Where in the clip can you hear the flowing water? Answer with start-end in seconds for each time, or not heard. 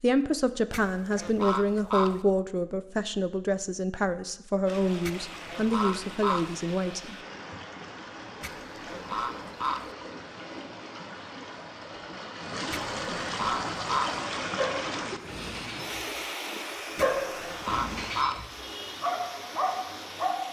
4.7-20.4.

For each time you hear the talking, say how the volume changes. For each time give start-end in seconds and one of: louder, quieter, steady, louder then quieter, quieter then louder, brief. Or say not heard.
0.0-7.2 steady.